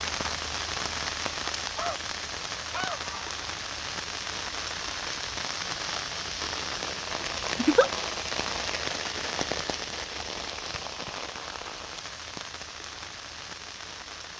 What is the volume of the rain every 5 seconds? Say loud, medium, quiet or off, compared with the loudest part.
loud, loud, medium.